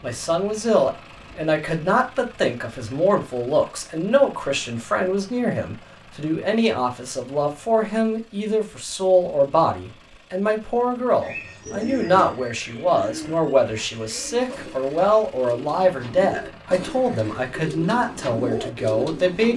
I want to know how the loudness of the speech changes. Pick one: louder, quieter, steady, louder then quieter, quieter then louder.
steady.